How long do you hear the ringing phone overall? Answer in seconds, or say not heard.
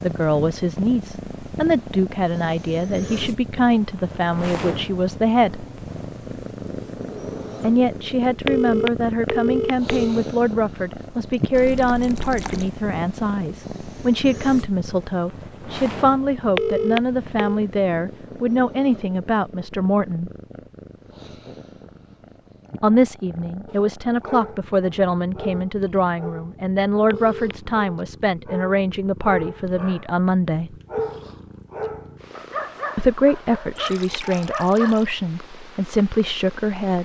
3 s.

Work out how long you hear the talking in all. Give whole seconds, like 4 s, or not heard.
30 s.